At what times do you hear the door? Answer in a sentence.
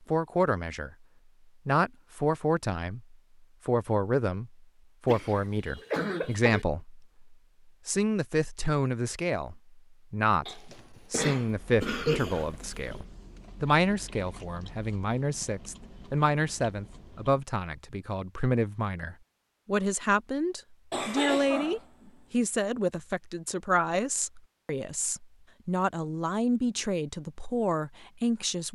You can't hear the door here.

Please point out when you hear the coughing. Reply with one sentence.
You can hear the coughing from 5.0 to 6.7 s, from 10.4 to 13.1 s and from 20.9 to 22.4 s.